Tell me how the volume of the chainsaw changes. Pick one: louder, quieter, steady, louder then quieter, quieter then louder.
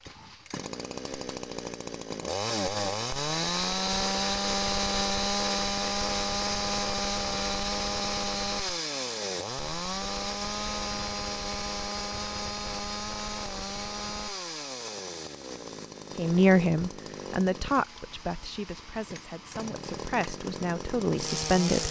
quieter.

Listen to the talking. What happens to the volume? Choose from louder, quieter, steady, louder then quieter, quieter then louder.
quieter then louder.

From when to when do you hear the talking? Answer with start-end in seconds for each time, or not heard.
16.1-21.8.